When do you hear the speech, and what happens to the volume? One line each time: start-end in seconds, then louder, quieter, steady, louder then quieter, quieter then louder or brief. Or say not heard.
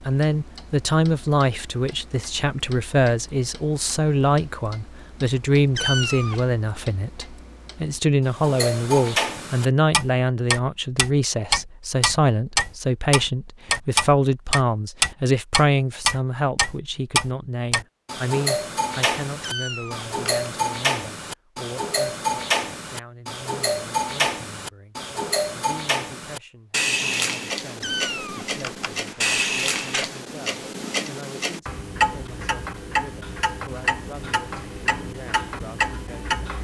0.1-36.4 quieter.